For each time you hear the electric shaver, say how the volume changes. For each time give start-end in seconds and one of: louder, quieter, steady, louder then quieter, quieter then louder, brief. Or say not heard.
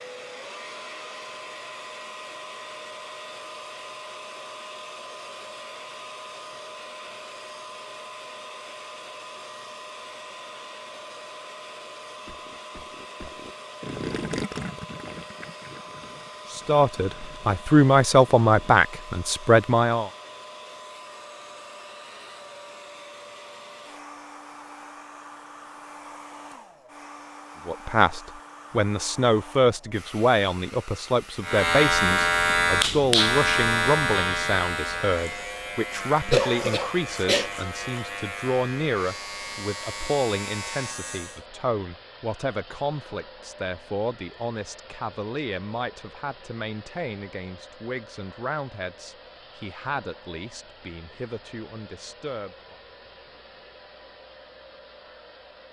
31.4-41.4 quieter.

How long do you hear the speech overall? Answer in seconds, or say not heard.
29 s.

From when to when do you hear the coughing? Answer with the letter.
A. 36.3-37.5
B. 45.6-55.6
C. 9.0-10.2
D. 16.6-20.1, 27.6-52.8
A.